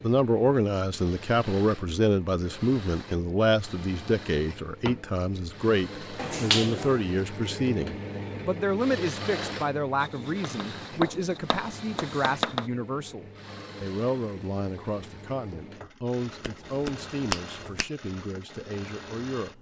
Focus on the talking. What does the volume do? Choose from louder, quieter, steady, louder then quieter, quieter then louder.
quieter.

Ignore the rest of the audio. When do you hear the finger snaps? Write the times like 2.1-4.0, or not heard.
6.2-7.0, 16.4-17.9.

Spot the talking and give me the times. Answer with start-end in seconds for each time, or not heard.
0.0-19.5.